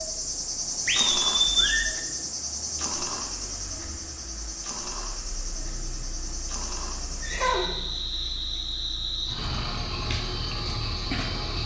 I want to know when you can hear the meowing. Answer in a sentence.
You can't hear the meowing here.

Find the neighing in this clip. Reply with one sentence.
The neighing can be heard from 0.8 to 1.9 s and from 7.0 to 7.8 s.